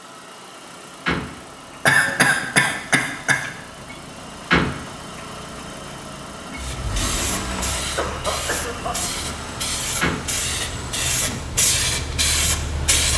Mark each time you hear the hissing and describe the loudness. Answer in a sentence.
The hissing can be heard from 6.5 to 13.1 s, getting louder.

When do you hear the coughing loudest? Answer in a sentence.
The volume of the coughing peaks at 2 seconds.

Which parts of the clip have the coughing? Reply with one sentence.
The coughing can be heard from 1.9 to 3.5 s and from 7.5 to 8.9 s.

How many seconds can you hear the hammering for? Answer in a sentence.
The hammering can't be heard in this clip.